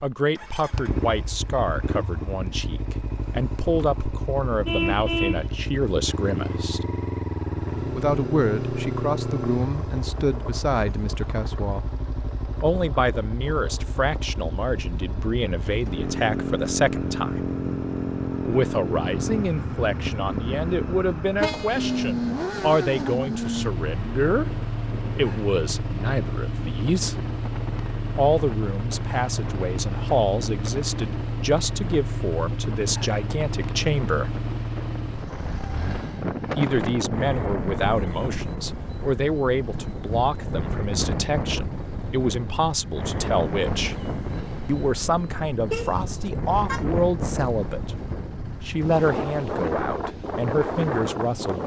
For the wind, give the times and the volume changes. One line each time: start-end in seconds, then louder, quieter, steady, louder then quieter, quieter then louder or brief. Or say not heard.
23.8-51.6 louder.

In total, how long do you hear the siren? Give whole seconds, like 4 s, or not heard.
not heard.